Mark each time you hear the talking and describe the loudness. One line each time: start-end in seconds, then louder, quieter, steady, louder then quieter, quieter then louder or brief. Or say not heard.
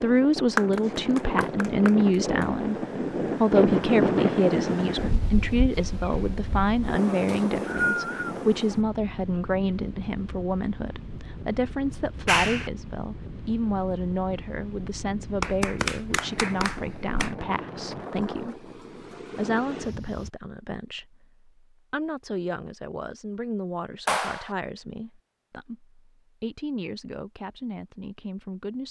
0.0-2.8 brief
3.4-28.8 quieter.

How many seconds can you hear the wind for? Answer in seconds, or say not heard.
20 s.